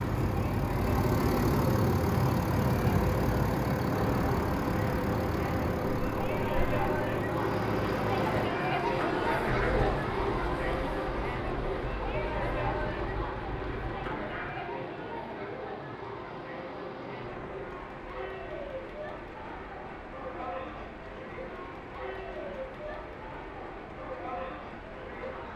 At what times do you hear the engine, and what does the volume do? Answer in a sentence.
You can hear the engine from 0.0 to 14.5 s, getting quieter.